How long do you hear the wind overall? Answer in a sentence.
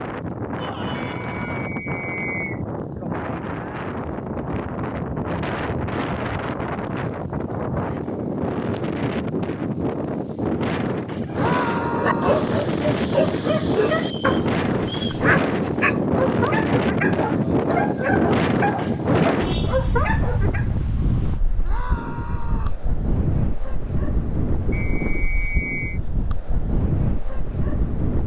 The wind can be heard for 28 seconds in total.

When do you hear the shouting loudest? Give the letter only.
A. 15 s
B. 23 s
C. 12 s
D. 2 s
C.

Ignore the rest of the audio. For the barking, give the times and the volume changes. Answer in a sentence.
You can hear the barking from 11.3 to 20.8 s, at a steady volume.